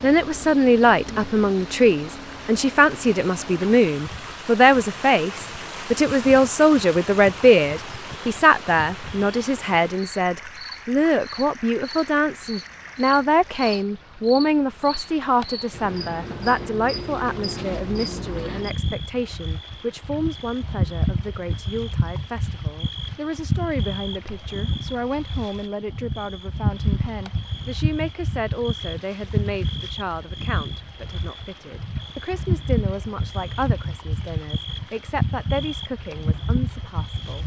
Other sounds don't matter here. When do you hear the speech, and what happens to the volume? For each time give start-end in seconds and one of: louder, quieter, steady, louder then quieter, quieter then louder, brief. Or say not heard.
0.0-37.4 quieter.